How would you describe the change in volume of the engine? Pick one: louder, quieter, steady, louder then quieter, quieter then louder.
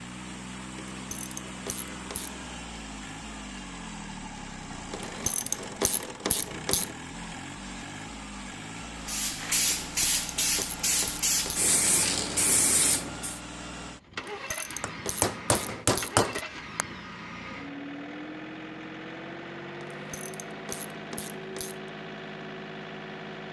steady.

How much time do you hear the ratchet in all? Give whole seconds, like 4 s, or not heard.
10 s.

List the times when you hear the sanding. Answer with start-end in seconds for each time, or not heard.
not heard.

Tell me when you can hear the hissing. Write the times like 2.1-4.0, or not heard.
9.1-13.4.